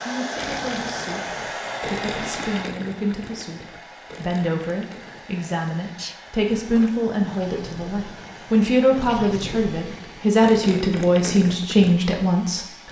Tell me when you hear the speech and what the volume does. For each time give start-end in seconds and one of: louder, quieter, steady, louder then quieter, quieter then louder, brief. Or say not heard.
0.1-12.8 louder.